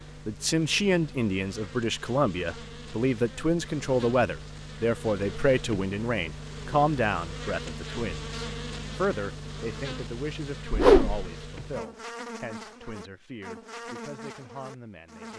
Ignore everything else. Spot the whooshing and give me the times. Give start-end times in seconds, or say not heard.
10.7-11.2.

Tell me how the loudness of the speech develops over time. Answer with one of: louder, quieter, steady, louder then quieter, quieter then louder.
quieter.